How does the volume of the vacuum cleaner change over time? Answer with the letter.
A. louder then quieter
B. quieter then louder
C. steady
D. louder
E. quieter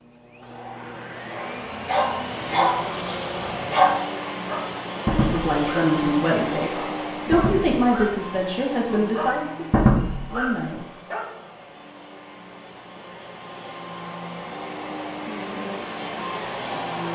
B.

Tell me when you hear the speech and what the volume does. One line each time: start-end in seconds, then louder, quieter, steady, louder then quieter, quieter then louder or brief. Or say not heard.
5.2-10.8 quieter.